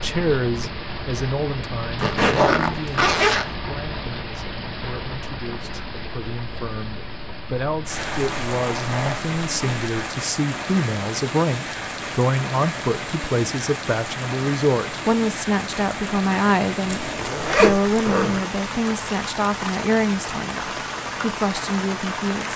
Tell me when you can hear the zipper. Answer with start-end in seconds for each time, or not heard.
1.9-3.5, 7.9-9.9, 16.9-18.4.